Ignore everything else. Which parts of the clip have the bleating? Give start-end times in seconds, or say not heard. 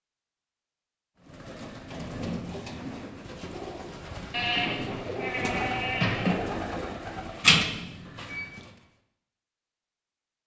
4.3-6.3.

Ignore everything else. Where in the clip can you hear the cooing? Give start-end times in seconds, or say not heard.
1.2-8.8.